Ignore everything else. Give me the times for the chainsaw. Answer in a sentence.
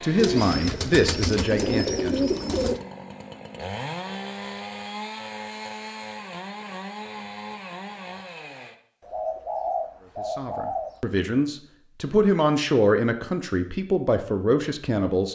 You can hear the chainsaw from 0.0 to 8.8 s.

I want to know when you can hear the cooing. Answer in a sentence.
The cooing can be heard from 0.1 to 2.8 s and from 9.0 to 10.9 s.